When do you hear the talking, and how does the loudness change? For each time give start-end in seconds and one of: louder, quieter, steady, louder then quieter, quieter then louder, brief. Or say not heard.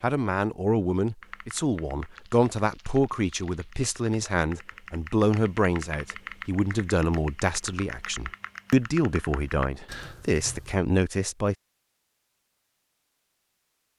0.0-11.6 steady.